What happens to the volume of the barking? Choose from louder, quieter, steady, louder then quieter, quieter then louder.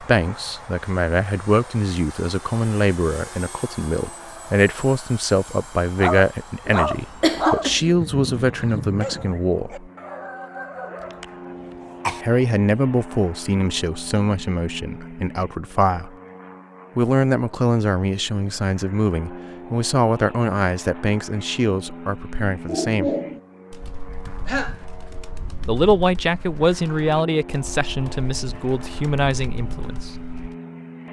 quieter.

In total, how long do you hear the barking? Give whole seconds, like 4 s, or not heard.
5 s.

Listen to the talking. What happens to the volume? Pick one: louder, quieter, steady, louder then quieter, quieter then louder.
steady.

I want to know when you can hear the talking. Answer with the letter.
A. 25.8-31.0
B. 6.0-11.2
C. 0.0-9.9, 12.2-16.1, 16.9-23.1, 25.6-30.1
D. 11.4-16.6
C.